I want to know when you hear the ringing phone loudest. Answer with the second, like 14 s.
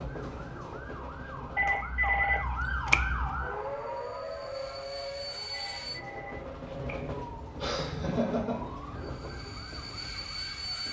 2 s.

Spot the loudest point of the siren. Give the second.
3 s.